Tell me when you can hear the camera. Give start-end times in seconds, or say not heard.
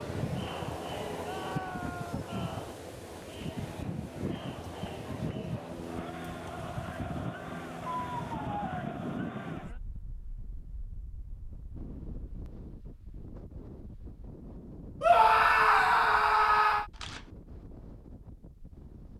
16.9-17.3.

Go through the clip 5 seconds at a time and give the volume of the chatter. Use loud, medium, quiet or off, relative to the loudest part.
loud, loud, off, off.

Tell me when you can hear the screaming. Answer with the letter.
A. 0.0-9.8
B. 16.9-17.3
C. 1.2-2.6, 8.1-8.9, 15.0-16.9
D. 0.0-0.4
C.